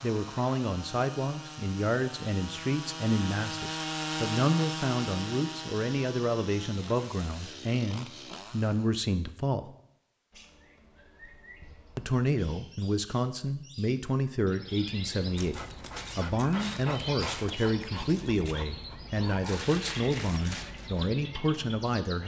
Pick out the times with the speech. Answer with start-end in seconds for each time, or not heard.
0.0-9.8, 11.9-22.2.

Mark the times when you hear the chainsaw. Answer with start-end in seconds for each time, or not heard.
0.0-8.9.